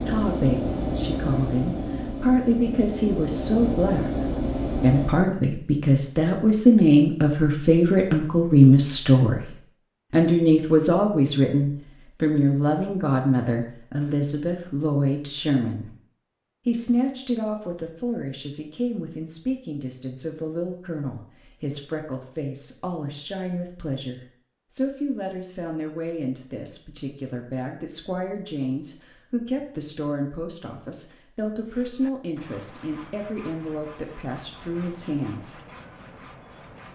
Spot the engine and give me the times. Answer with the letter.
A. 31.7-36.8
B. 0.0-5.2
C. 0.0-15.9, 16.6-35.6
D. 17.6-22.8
B.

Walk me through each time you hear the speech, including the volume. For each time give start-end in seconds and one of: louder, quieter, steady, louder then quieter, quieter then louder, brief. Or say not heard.
0.0-15.9 louder then quieter
16.6-35.6 steady.